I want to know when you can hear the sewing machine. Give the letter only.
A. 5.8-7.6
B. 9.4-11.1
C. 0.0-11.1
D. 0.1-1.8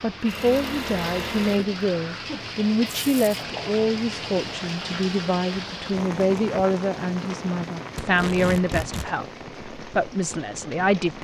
D.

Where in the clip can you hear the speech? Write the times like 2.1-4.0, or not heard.
0.0-11.1.